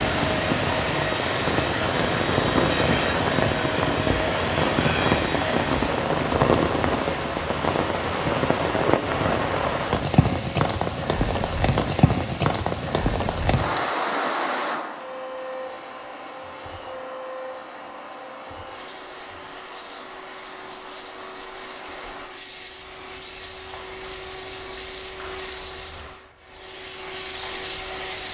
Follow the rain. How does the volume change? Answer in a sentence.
The volume of the rain goes down.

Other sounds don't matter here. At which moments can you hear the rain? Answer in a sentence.
The rain can be heard from 0.0 to 28.2 s.